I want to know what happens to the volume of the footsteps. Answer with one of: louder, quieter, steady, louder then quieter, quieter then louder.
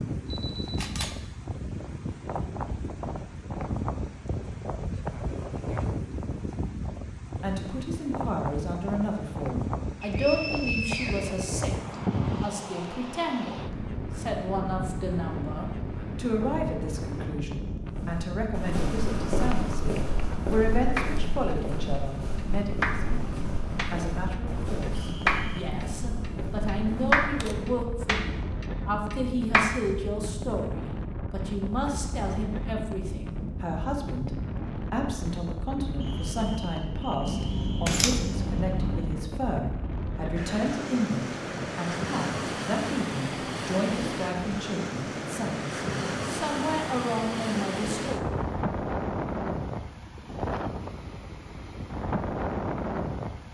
quieter.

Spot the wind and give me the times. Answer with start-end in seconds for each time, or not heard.
0.0-53.4.